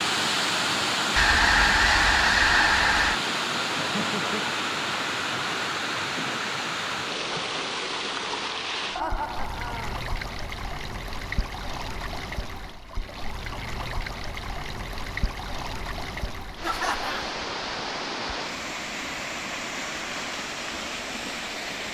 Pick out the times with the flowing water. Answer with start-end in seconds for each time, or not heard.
0.0-21.8.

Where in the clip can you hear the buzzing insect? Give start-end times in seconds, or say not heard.
not heard.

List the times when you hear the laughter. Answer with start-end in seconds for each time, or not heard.
3.8-4.6, 8.9-10.0, 16.6-17.4.